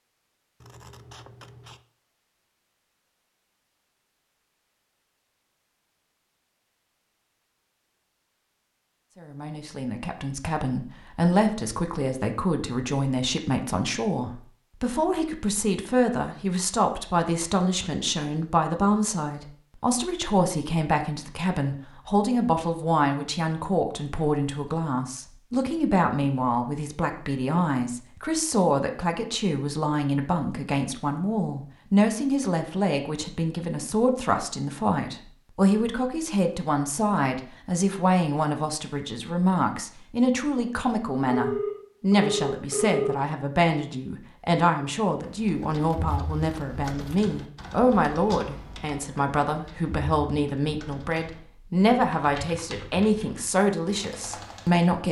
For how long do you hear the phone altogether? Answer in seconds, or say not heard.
2 s.